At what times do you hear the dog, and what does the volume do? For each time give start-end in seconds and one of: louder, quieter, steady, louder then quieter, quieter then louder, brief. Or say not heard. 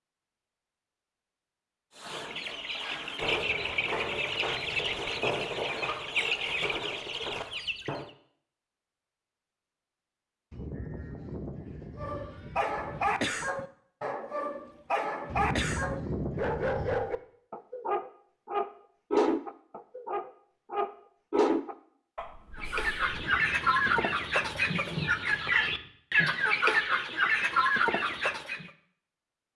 11.9-23.2 steady.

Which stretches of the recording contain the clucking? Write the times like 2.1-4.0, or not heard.
1.9-8.1, 22.6-28.7.